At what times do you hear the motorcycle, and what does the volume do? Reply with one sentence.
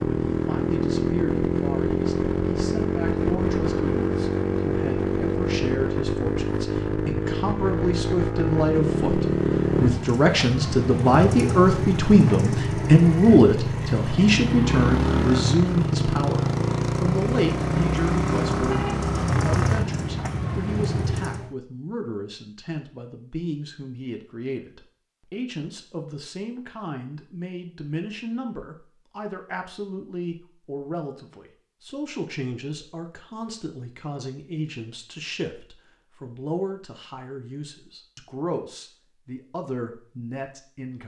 You can hear the motorcycle from 0.0 to 21.6 s, at a steady volume.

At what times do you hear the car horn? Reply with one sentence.
The car horn can be heard from 18.6 to 19.1 s.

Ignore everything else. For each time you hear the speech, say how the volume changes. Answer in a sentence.
The speech can be heard from 0.2 to 41.0 s, getting louder then quieter.